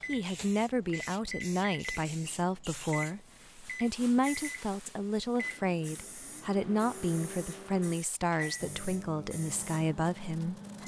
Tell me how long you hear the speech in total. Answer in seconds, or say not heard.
11 s.